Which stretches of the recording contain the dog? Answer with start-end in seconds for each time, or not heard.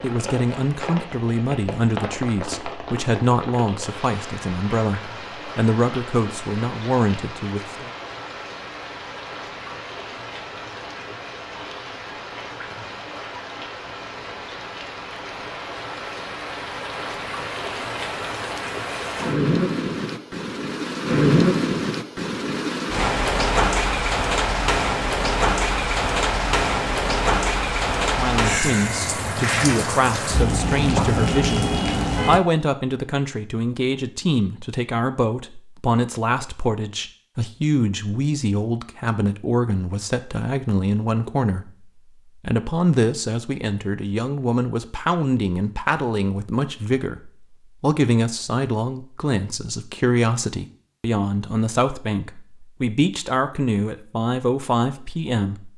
not heard.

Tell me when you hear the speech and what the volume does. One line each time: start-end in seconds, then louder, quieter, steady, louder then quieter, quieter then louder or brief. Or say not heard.
0.0-7.9 steady
28.1-55.7 steady.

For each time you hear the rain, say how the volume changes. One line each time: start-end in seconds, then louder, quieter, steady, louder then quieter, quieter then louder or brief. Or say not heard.
0.0-32.4 louder.